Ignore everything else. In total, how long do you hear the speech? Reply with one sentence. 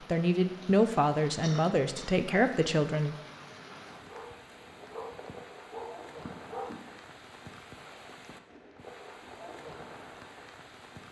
The speech can be heard for 3 seconds in total.